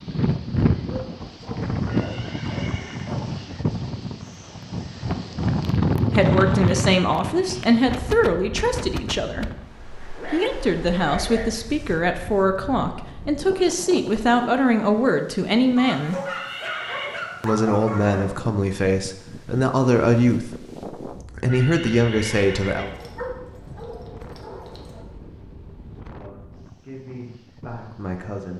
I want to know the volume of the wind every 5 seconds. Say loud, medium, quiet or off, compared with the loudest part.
loud, loud, quiet, quiet, quiet, quiet.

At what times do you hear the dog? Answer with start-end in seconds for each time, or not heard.
0.9-3.2, 10.0-11.6, 15.8-18.3, 22.8-25.1.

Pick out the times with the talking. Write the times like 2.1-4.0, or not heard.
6.1-9.4, 10.3-16.1, 17.4-22.9, 26.1-28.5.